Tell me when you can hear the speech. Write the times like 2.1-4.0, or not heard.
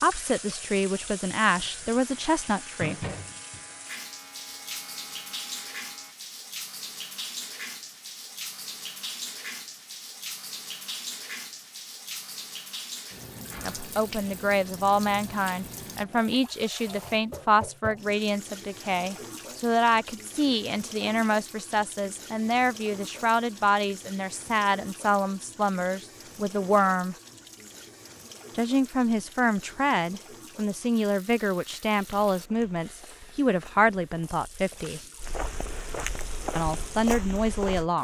0.0-3.0, 13.6-27.1, 28.6-35.0, 36.5-38.0.